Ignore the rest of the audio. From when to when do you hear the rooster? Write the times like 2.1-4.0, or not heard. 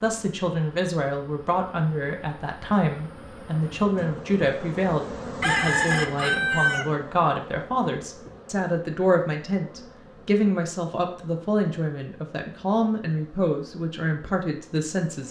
5.4-6.9.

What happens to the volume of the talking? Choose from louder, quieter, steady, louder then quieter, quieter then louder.
steady.